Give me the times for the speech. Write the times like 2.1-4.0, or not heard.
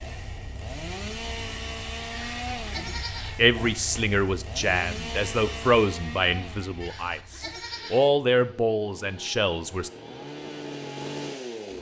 2.7-9.9.